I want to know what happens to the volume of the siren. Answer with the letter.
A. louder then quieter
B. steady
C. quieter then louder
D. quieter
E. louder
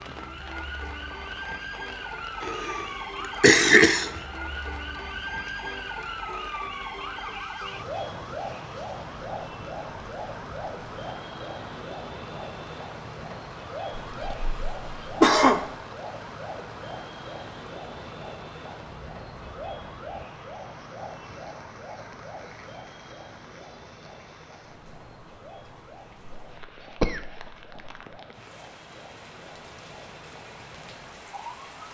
D.